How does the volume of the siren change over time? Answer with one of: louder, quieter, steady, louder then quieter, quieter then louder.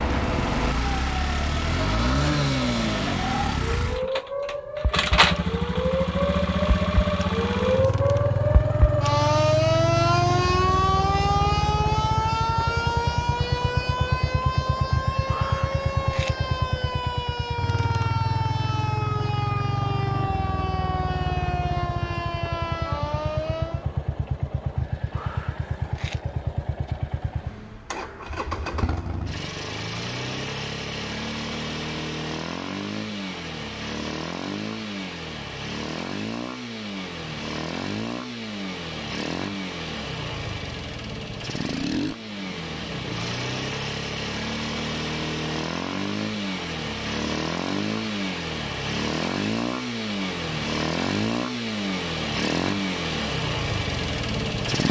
louder then quieter.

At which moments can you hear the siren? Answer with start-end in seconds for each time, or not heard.
0.0-23.9.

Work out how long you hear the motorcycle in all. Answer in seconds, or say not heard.
55 s.